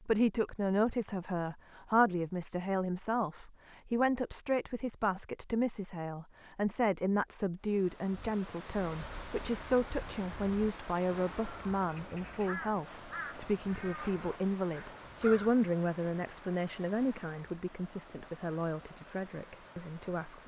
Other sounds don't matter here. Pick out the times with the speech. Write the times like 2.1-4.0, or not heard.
0.1-20.4.